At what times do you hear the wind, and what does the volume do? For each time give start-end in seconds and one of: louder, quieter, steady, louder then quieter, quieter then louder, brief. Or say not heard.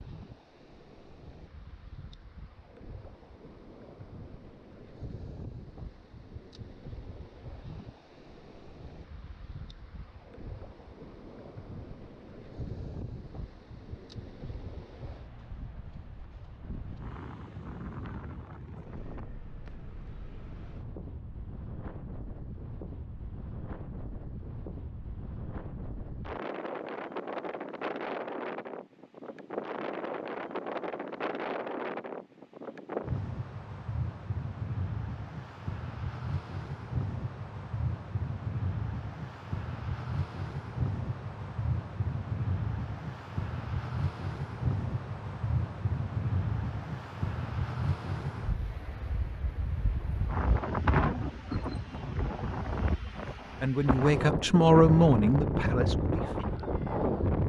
0.0-57.4 louder.